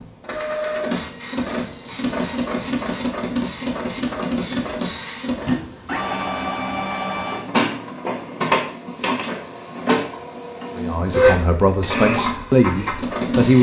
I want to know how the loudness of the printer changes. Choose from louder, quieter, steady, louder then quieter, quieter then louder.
steady.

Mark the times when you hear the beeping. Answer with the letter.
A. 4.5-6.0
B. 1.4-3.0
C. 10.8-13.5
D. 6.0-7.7
B.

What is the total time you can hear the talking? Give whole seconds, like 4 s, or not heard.
3 s.